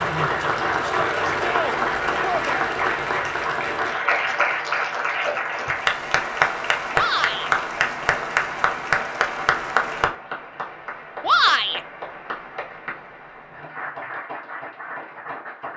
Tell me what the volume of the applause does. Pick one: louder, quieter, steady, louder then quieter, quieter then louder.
quieter.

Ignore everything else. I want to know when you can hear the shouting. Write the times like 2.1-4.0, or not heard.
0.8-2.6, 6.9-7.5, 11.2-11.8.